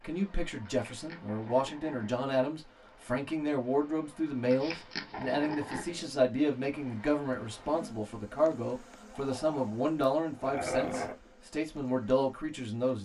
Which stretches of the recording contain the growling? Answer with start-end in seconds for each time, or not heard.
0.6-2.2, 4.5-6.0, 9.1-11.2.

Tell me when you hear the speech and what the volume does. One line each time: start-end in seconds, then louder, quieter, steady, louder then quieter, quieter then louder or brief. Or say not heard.
0.0-13.0 steady.